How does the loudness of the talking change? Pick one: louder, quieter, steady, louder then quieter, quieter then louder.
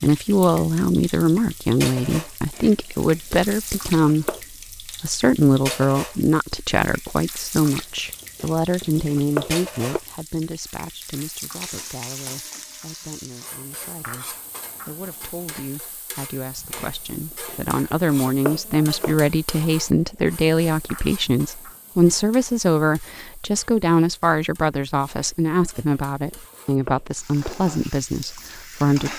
quieter then louder.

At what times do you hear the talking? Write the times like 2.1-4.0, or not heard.
0.0-4.3, 5.0-29.1.